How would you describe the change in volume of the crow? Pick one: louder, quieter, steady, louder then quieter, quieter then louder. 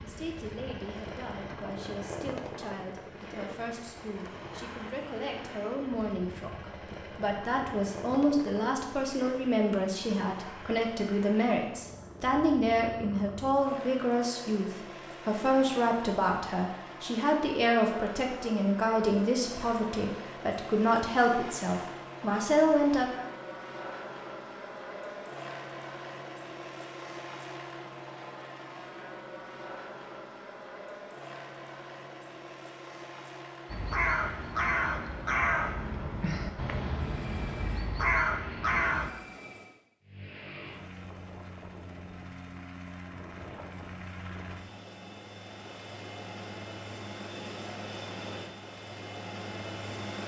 quieter then louder.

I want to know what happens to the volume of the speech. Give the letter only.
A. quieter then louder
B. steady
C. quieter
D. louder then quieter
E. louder
E.